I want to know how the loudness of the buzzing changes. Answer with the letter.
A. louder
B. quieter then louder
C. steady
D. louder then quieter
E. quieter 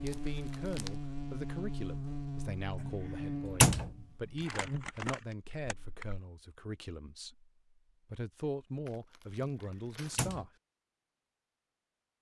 B.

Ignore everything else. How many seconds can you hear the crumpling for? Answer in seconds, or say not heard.
4 s.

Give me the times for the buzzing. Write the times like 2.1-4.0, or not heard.
0.0-6.0.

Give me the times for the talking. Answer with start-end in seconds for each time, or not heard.
0.0-10.5.